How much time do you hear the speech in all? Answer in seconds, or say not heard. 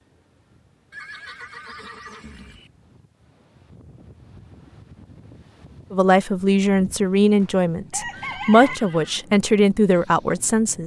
5 s.